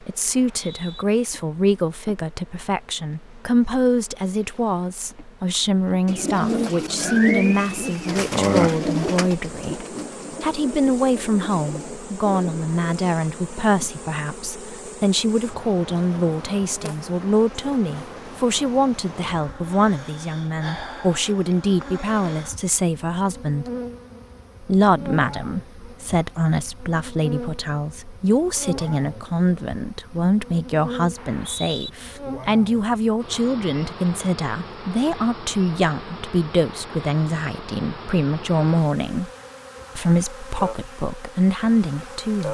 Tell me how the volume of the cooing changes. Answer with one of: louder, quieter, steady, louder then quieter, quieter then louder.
quieter.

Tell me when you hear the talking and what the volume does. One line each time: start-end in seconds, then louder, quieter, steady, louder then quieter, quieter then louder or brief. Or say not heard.
0.0-23.6 steady
24.6-39.3 steady
40.0-42.4 brief.